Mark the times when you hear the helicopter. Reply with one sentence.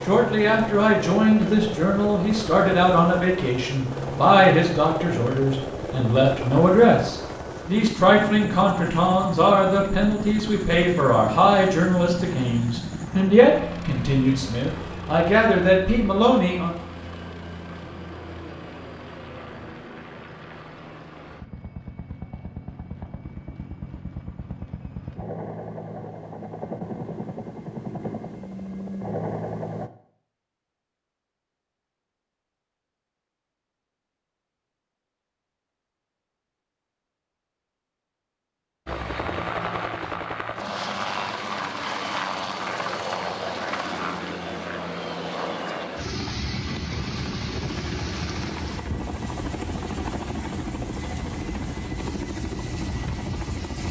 You can hear the helicopter from 0.0 to 29.9 s and from 38.9 to 53.8 s.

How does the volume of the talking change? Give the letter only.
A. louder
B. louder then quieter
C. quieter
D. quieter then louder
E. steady
E.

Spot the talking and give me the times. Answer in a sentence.
You can hear the talking from 0.0 to 16.7 s.